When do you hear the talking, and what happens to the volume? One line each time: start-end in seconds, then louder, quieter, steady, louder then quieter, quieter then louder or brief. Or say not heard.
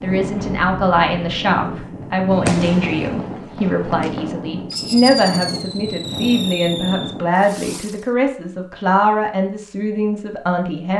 0.0-10.9 steady.